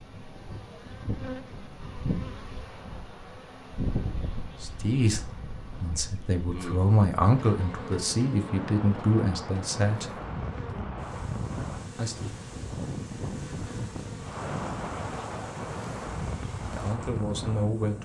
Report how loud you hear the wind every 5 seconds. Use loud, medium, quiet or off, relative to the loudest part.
quiet, medium, loud, loud.